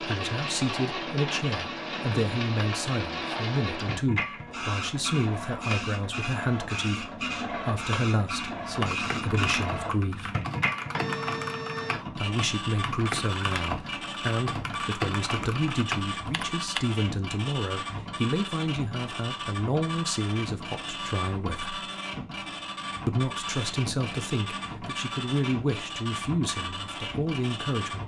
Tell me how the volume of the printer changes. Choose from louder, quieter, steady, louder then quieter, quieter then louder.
steady.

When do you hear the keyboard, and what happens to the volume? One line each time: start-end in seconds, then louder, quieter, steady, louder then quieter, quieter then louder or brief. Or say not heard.
8.6-16.8 steady.